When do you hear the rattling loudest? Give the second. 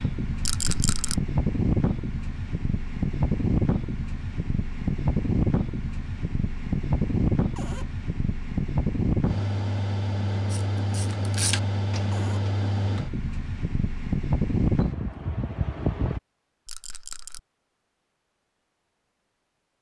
1 s.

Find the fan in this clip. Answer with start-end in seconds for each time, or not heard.
0.0-16.2.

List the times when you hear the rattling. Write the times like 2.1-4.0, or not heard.
0.4-1.2, 16.6-17.4.